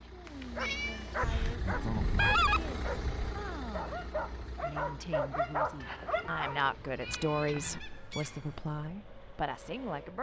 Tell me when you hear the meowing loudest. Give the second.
1 s.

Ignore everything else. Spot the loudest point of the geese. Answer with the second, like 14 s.
2 s.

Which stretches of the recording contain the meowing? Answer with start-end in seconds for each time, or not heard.
0.2-1.6, 5.8-7.8.